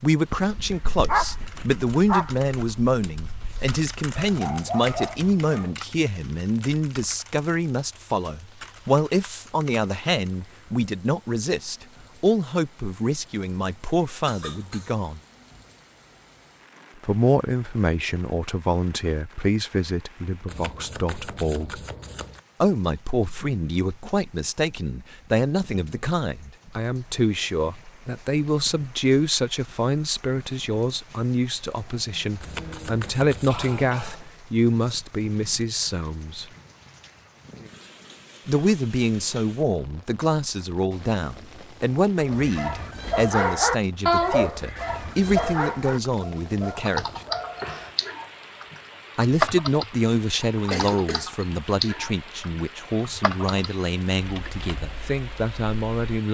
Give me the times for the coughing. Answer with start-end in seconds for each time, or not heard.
14.2-14.9, 32.1-34.4, 50.7-51.3.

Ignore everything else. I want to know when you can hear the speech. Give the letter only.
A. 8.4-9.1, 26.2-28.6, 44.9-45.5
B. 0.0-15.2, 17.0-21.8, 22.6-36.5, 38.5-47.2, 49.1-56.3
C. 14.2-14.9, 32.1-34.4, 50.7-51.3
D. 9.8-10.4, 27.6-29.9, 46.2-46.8
B.